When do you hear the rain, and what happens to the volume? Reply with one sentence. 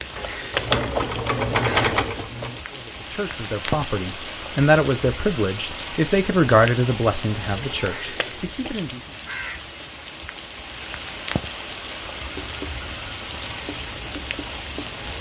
You can hear the rain from 0.0 to 15.1 s, at a steady volume.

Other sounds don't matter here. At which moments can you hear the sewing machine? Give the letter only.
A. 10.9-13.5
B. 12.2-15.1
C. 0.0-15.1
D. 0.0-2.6
D.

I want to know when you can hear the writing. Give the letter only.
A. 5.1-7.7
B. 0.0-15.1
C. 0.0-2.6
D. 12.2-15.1
D.